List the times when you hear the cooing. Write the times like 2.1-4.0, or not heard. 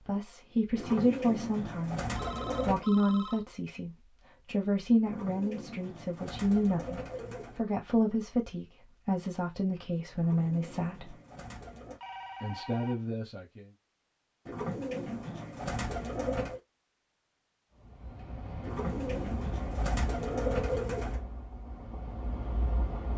0.8-2.9, 5.0-7.7, 10.2-12.0, 14.4-16.6, 18.6-21.2.